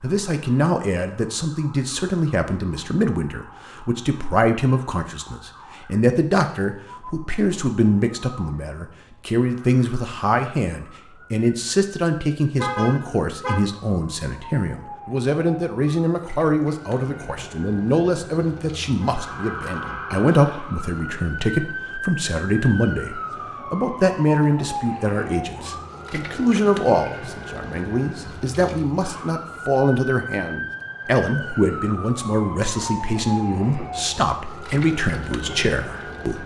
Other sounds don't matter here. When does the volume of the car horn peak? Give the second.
13 s.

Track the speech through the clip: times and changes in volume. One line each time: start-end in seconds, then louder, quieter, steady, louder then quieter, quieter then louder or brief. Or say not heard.
0.0-36.4 steady.